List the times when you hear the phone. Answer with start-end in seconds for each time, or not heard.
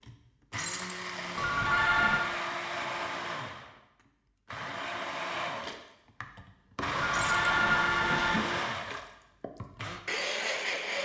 1.4-2.3, 7.0-8.5.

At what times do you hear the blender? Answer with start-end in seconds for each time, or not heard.
0.0-11.0.